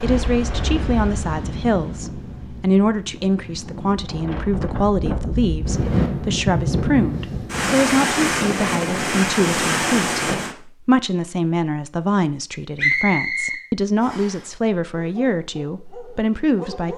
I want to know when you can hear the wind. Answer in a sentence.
The wind can be heard from 0.0 to 10.6 s.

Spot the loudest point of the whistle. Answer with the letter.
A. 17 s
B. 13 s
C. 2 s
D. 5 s
B.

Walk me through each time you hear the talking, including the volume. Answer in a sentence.
You can hear the talking from 0.0 to 16.9 s, at a steady volume.